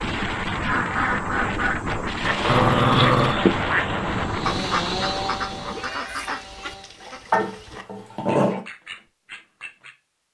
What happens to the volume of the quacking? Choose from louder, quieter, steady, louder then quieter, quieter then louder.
quieter.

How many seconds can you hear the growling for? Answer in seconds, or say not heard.
2 s.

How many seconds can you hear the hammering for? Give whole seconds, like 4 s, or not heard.
not heard.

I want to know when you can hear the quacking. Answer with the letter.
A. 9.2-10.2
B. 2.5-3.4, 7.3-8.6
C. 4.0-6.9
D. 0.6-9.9
D.